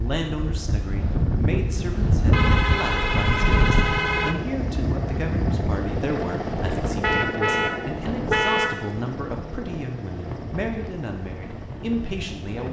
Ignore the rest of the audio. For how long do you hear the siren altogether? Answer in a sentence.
You can't hear the siren here.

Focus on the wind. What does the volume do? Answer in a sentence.
The loudness of the wind goes down.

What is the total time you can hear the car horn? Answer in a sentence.
The car horn can be heard for 4 seconds in total.